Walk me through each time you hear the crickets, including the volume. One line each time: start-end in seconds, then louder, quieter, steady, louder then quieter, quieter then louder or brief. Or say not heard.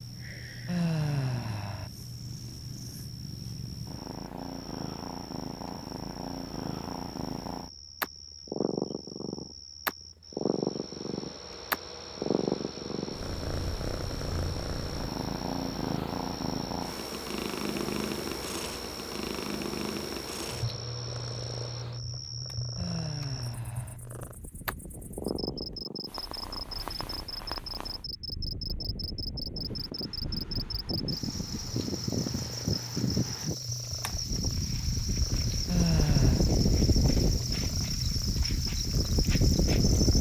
0.0-40.1 louder.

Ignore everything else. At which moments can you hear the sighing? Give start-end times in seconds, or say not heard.
0.7-1.9, 22.8-24.0, 35.6-36.5.